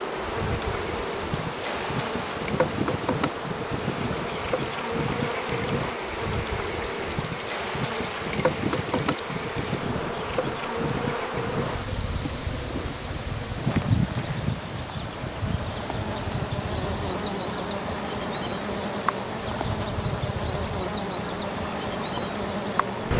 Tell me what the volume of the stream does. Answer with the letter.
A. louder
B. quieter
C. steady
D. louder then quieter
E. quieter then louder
C.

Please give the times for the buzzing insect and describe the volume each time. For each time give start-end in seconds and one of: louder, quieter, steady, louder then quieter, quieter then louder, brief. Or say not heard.
0.0-23.1 steady.